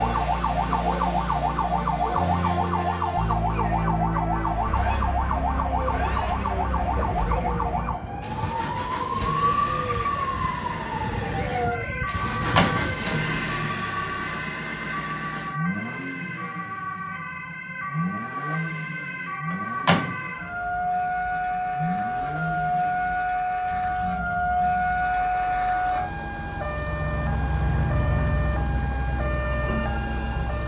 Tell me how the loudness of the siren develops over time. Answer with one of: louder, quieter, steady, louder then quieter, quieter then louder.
quieter then louder.